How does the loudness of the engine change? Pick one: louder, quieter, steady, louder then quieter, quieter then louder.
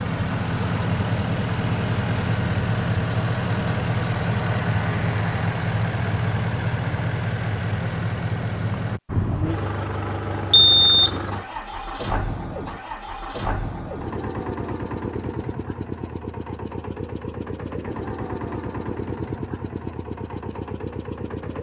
quieter.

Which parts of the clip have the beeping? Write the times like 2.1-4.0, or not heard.
10.5-11.1.